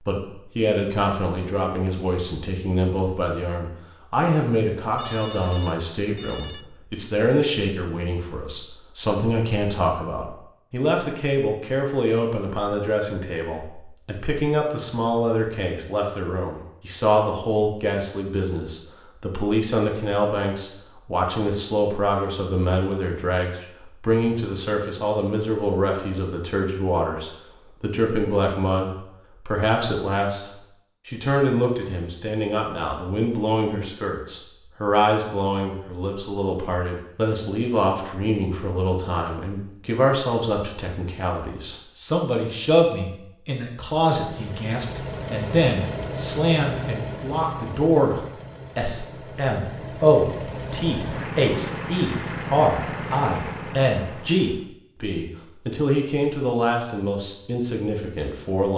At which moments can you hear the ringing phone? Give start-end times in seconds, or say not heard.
5.0-6.7.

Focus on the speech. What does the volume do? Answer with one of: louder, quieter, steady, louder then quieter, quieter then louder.
steady.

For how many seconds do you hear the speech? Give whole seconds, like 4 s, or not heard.
59 s.